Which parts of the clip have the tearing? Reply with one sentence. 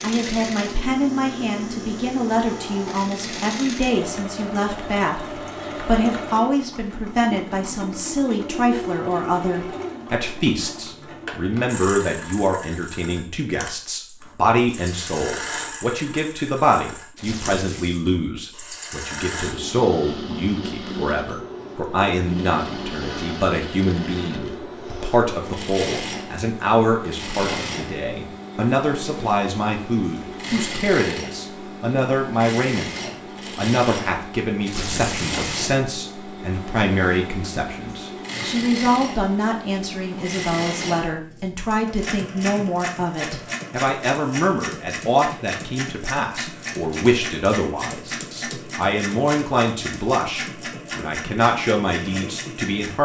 The tearing can be heard from 17.1 to 18.1 s and from 34.6 to 35.6 s.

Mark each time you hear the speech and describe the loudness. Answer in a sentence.
You can hear the speech from 0.0 to 33.0 s, at a steady volume; and from 33.5 to 53.0 s, at a steady volume.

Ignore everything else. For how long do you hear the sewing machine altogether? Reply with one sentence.
You can hear the sewing machine for 53 seconds altogether.